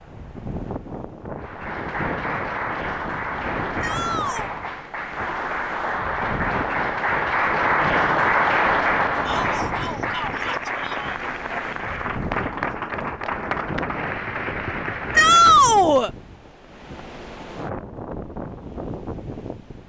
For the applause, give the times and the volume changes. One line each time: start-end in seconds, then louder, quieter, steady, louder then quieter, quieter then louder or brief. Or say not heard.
1.4-15.7 louder then quieter.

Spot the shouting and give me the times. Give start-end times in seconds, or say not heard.
3.8-4.5, 9.2-11.2, 15.2-16.1.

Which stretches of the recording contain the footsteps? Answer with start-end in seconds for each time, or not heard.
not heard.